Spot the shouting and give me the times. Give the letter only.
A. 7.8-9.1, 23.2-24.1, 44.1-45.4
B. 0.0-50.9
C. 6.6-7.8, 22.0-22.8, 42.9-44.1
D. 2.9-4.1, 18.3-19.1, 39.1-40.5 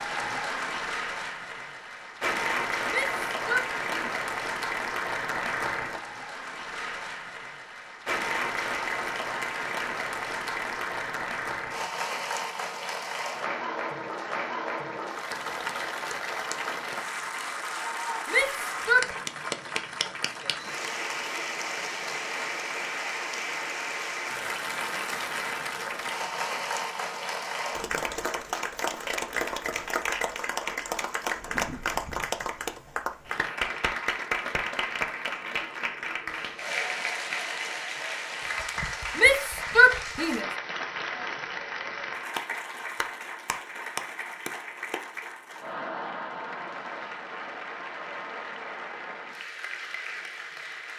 D.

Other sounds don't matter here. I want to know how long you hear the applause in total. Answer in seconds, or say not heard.
51 s.